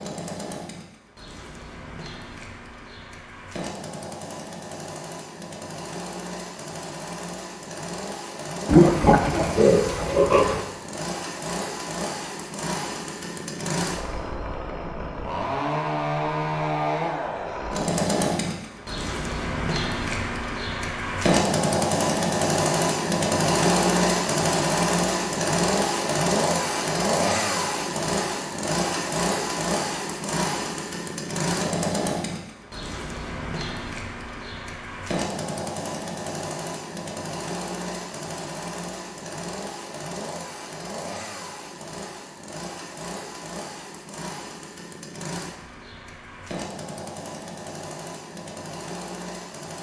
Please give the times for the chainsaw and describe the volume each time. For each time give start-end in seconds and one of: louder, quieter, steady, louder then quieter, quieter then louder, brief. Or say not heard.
0.0-49.7 louder then quieter.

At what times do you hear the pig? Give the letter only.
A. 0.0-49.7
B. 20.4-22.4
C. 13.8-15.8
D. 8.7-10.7
D.